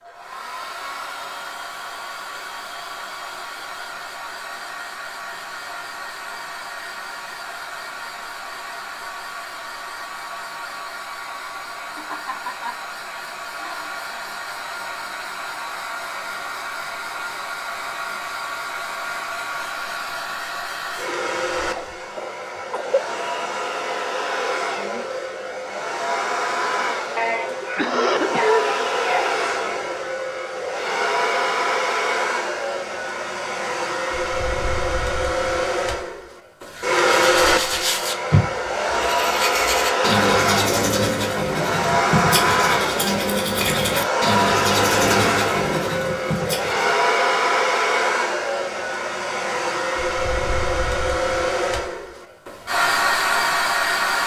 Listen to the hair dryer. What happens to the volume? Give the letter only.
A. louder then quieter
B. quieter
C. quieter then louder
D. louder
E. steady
D.